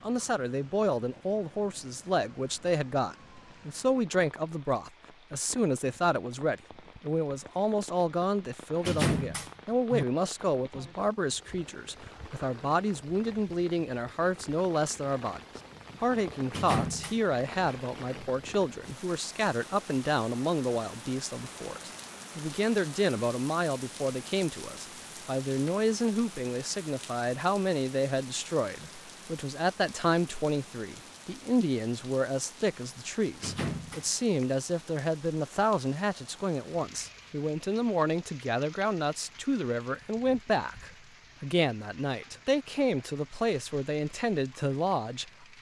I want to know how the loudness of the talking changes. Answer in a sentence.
The loudness of the talking stays about the same.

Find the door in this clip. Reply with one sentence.
The door can be heard from 8.8 to 10.1 s, from 16.4 to 17.2 s and from 33.4 to 34.1 s.